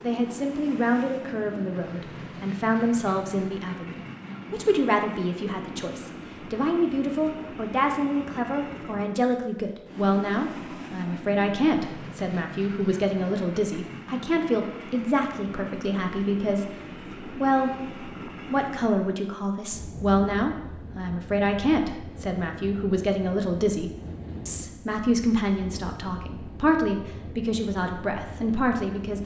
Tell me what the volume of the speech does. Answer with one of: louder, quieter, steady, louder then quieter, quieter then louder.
steady.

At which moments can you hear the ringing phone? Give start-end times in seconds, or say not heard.
not heard.